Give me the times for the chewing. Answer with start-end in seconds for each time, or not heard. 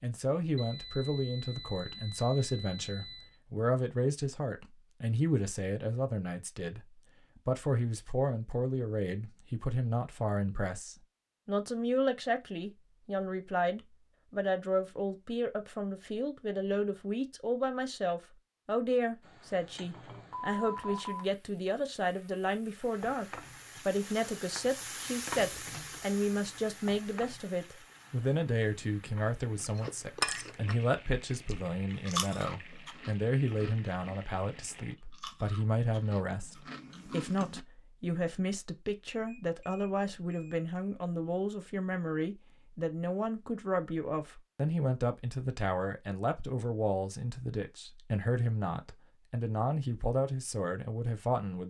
29.6-30.8, 31.4-37.6.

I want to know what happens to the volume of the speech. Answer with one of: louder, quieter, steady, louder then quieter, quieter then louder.
steady.